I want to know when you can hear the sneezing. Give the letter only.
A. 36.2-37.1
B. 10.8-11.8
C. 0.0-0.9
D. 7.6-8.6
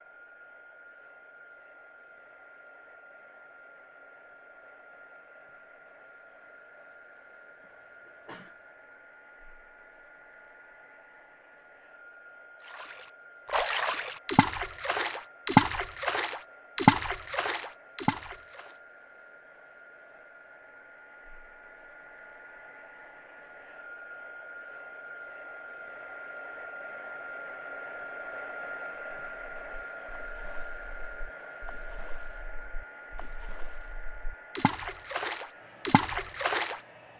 D.